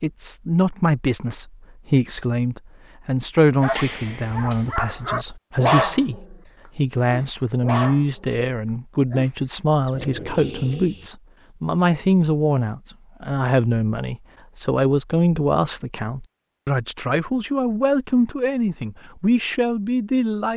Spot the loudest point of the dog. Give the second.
6 s.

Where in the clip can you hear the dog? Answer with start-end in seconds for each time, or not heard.
3.6-6.2, 7.0-8.3, 9.1-11.1.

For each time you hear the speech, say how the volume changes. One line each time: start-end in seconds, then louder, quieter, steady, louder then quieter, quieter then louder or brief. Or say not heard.
0.0-20.5 steady.